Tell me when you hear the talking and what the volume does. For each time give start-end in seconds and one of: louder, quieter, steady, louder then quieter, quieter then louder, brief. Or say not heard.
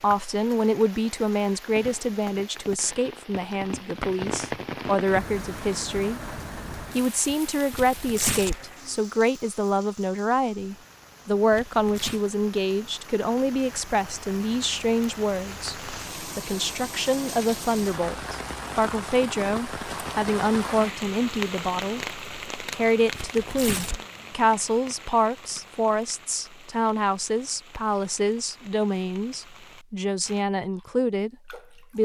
0.0-31.9 steady.